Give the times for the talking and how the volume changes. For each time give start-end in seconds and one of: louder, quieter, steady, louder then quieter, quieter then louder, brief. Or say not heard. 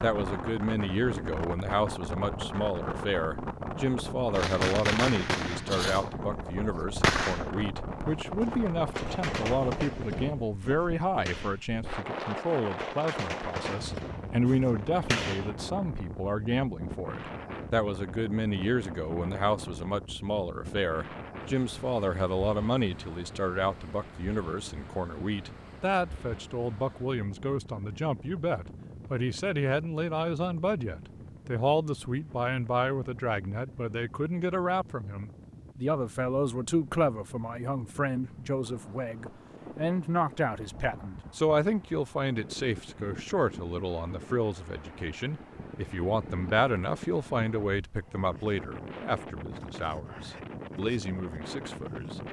0.0-52.2 steady.